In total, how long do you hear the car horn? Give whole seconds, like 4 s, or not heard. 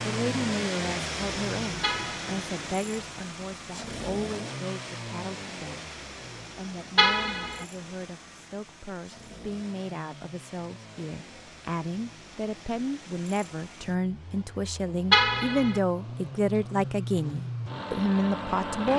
2 s.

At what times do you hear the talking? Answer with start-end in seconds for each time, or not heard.
0.1-18.9.